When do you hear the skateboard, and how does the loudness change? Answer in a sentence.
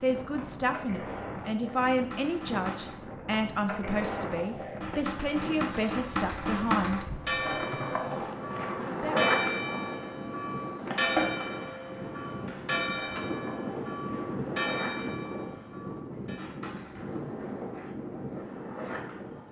The skateboard can be heard from 0.2 to 19.4 s, getting louder then quieter.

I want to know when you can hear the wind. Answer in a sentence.
The wind can be heard from 0.0 to 19.4 s.